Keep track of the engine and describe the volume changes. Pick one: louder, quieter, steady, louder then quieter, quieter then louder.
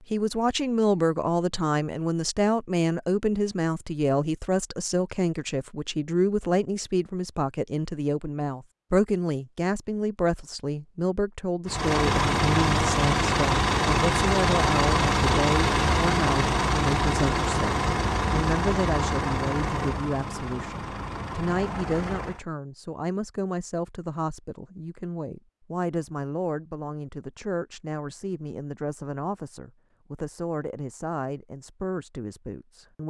quieter.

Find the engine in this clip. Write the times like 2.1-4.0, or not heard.
11.7-22.4.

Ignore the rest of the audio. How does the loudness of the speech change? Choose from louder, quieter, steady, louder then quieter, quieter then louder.
quieter.